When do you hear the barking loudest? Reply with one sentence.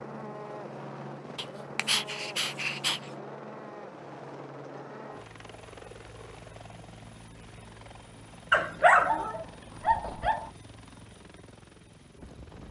The loudest moment of the barking is at 9 seconds.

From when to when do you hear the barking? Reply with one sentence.
The barking can be heard from 1.4 to 3.0 s and from 8.5 to 10.5 s.